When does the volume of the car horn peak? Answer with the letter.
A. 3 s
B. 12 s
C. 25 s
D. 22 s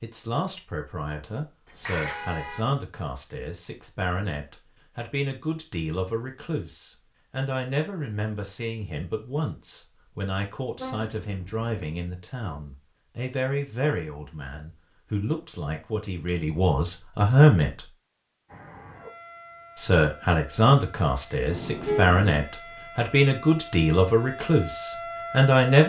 D.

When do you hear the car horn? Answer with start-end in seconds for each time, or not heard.
1.6-2.6, 10.8-11.9, 21.5-22.2.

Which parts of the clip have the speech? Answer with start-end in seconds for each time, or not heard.
0.0-17.9, 19.8-25.8.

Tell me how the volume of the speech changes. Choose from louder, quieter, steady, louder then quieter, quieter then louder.
louder.